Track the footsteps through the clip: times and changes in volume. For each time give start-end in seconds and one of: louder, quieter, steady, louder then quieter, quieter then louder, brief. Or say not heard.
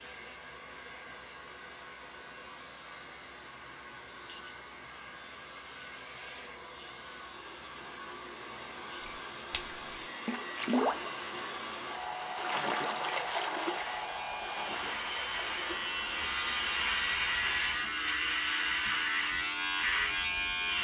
not heard.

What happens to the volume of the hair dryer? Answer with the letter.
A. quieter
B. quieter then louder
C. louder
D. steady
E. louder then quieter
C.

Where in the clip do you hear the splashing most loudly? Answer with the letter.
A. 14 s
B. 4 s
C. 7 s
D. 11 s
D.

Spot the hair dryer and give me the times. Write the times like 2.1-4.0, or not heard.
0.0-17.7.